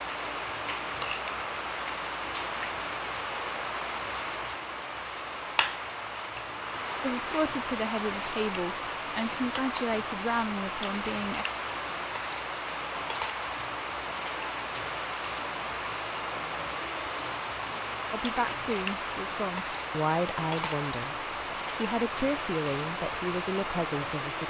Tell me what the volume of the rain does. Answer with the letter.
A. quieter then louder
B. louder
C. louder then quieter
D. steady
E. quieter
D.